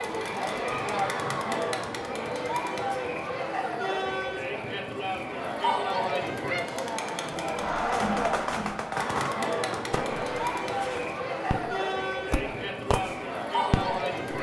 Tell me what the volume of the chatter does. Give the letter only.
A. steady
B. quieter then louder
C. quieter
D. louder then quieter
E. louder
A.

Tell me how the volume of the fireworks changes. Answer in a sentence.
The volume of the fireworks goes down, then up.